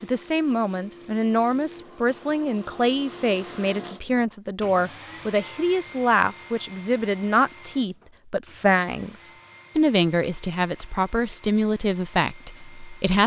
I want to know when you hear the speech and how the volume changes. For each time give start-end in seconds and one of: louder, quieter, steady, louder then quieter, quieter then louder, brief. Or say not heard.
0.0-13.2 steady.